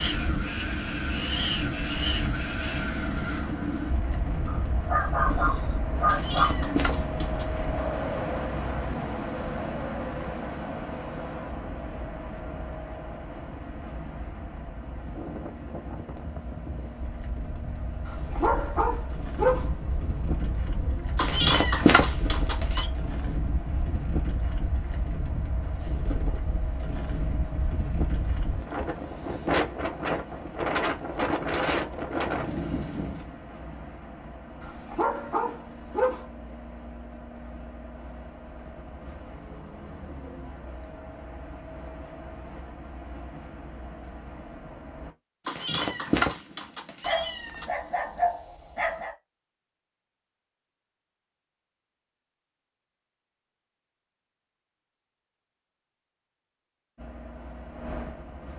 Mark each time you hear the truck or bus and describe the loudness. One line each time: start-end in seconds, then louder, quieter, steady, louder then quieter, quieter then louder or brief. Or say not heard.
0.1-45.1 quieter
57.0-58.5 brief.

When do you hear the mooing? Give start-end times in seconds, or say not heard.
not heard.